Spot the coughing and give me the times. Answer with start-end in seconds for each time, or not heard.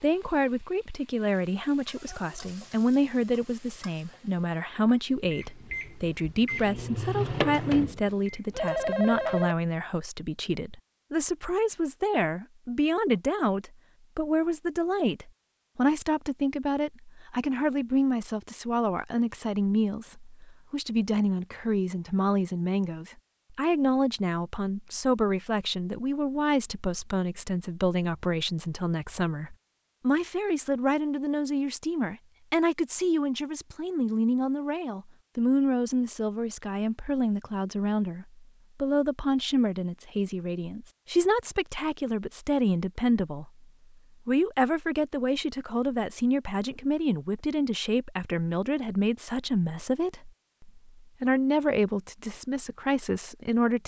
not heard.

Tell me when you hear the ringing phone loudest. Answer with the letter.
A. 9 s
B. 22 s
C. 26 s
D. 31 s
A.